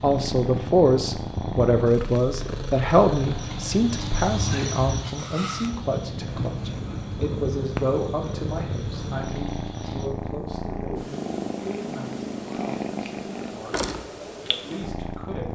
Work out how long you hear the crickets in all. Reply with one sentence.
You can hear the crickets for 10 seconds altogether.